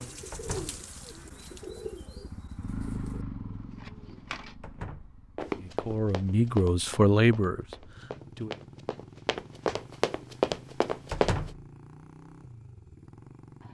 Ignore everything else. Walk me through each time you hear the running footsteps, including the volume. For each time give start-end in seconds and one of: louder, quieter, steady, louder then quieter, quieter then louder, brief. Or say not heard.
5.3-11.5 quieter then louder.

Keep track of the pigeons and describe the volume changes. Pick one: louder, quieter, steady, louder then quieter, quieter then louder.
quieter.